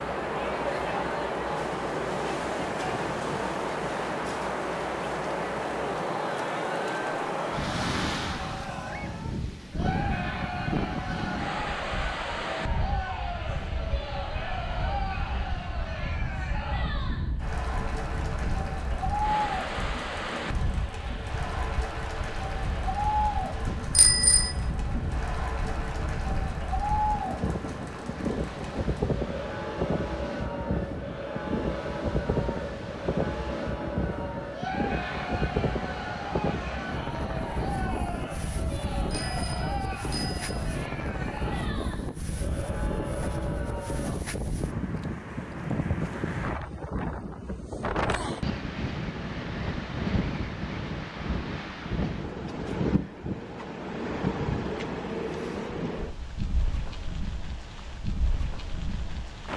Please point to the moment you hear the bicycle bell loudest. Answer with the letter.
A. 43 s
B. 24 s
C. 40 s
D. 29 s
B.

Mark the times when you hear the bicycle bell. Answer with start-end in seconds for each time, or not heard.
23.6-24.6, 38.8-40.7.